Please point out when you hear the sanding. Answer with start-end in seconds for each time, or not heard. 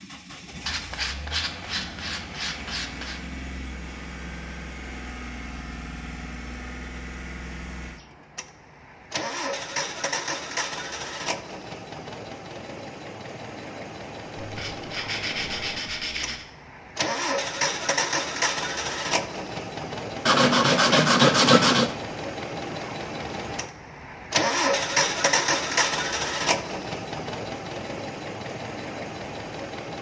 0.7-3.2, 14.3-16.4, 20.2-21.9.